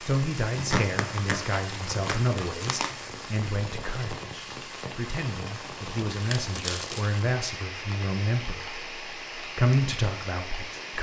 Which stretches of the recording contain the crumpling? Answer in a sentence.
The crumpling can be heard from 0.6 to 3.0 s and from 6.1 to 7.1 s.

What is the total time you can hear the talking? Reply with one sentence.
You can hear the talking for 11 seconds altogether.